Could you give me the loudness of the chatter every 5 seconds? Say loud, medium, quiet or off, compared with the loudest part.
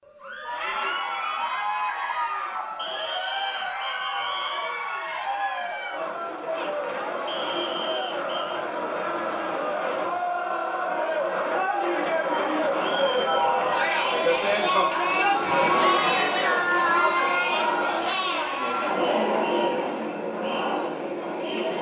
medium, medium, loud, loud, medium.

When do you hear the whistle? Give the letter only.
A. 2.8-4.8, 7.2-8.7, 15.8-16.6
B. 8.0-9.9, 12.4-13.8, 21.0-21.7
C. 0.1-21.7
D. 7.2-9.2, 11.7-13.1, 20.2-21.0
A.